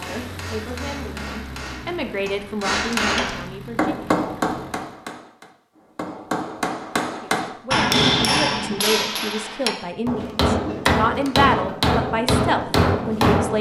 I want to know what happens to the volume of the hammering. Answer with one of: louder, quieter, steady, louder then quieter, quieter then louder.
louder.